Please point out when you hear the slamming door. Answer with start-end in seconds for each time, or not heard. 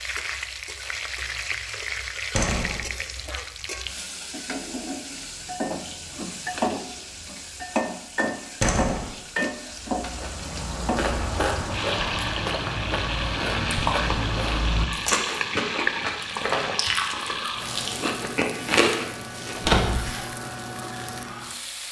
2.4-2.9, 8.6-9.1, 19.6-20.1.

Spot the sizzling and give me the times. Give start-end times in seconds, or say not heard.
0.0-21.8.